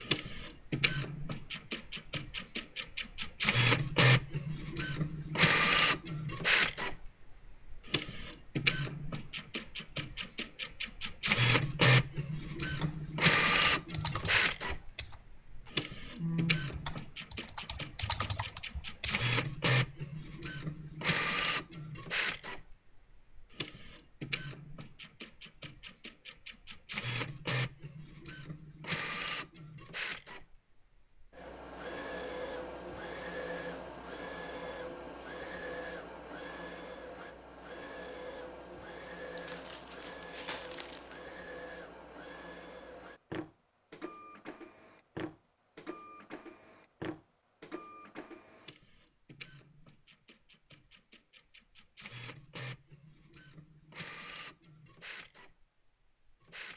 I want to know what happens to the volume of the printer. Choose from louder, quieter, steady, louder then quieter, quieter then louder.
quieter.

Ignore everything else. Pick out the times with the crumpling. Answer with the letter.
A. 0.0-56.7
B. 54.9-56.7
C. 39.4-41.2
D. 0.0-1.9
C.